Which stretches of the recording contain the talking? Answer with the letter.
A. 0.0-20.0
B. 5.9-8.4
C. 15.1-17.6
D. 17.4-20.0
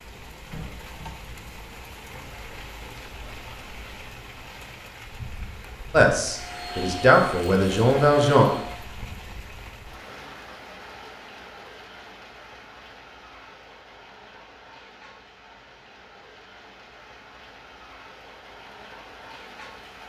B.